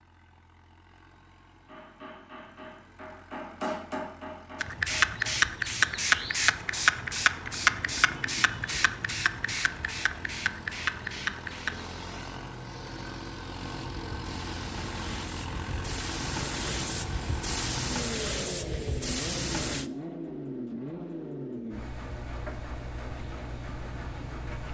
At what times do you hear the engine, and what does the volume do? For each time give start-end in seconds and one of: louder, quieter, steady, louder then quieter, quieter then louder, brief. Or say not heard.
0.0-24.7 louder.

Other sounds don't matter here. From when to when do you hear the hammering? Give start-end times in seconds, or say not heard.
1.6-5.4.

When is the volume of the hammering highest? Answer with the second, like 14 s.
4 s.